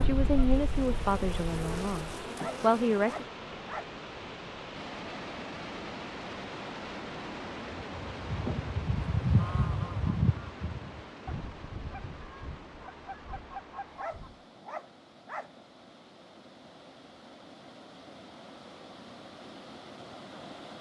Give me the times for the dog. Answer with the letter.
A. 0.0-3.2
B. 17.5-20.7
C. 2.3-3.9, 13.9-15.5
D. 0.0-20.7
C.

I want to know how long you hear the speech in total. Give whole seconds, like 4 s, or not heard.
3 s.